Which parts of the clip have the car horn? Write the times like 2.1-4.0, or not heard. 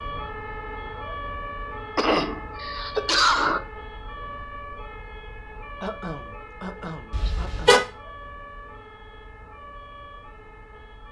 7.1-7.8.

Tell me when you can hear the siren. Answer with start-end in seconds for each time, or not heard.
0.0-11.0.